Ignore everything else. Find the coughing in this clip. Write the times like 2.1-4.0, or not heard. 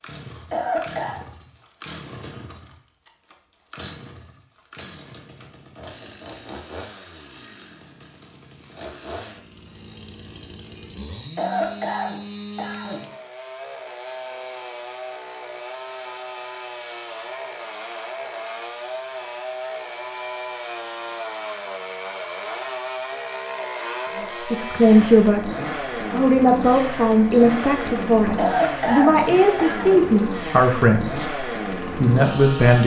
0.5-1.2, 11.3-13.1, 28.4-30.1.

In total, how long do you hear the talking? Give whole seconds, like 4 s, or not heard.
8 s.